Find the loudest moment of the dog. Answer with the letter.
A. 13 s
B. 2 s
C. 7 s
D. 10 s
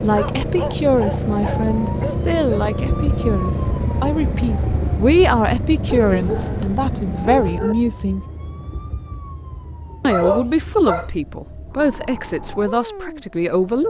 D.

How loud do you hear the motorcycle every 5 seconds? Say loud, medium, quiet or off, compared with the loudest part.
loud, loud, off.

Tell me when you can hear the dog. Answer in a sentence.
The dog can be heard from 0.1 to 2.6 s, from 5.8 to 7.8 s and from 10.0 to 11.2 s.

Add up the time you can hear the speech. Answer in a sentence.
You can hear the speech for 12 seconds altogether.